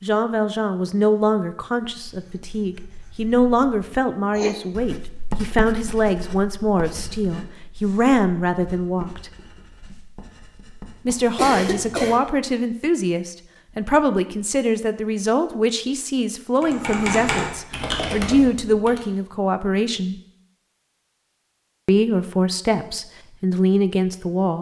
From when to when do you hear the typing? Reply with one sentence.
You can hear the typing from 16.6 to 19.0 s.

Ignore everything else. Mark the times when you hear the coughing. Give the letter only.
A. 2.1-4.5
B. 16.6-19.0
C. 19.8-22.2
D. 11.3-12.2
D.